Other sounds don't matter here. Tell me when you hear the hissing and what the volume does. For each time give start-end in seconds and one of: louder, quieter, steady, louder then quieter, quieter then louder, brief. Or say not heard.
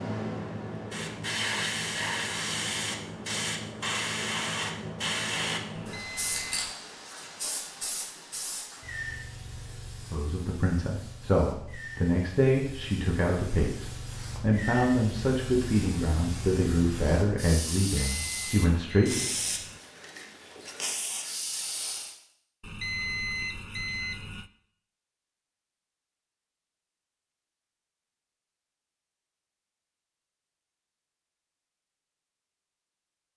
0.0-22.1 quieter then louder.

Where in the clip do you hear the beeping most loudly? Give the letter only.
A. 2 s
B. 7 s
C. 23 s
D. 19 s
C.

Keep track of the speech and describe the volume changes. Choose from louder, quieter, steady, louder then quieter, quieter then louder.
steady.